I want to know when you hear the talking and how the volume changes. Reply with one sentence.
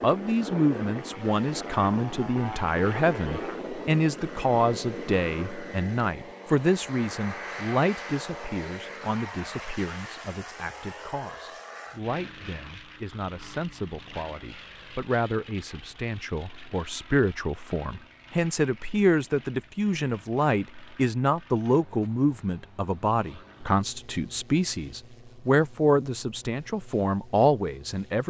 The talking can be heard from 0.0 to 28.2 s, getting quieter then louder.